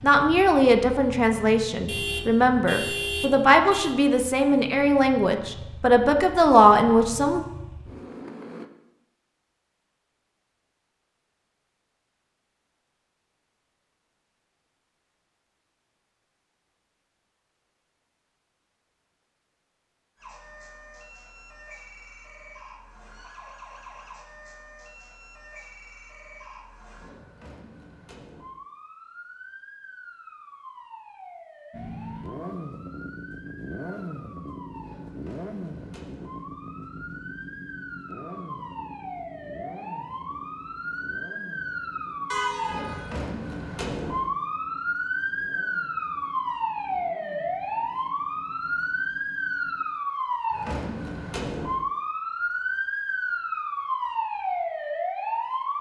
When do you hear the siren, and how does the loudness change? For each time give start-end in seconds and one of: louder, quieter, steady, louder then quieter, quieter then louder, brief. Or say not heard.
20.1-55.7 louder.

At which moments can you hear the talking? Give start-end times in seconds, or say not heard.
0.0-7.5.